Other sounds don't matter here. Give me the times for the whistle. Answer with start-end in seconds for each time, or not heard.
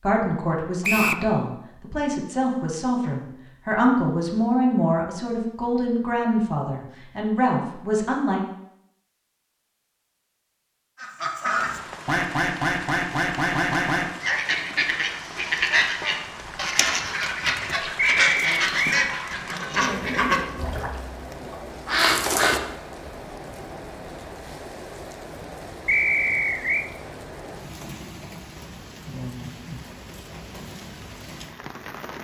0.8-1.2, 17.9-18.8, 25.9-26.9.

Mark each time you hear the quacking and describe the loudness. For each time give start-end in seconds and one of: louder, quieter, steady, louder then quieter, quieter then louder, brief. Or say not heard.
11.0-22.6 steady.